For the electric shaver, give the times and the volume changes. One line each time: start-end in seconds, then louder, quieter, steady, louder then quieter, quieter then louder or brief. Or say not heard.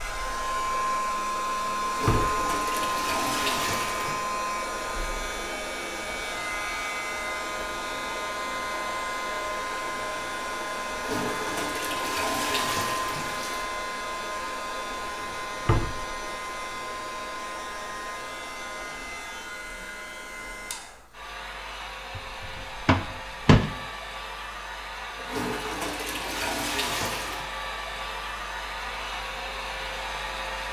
not heard.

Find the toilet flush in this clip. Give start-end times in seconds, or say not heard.
1.9-4.2, 10.9-13.7, 25.1-27.4.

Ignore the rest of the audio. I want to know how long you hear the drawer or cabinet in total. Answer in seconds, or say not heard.
3 s.